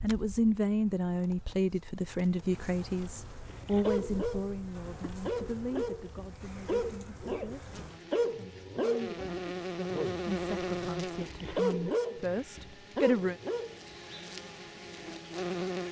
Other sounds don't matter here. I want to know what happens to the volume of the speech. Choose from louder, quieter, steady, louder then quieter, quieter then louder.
quieter then louder.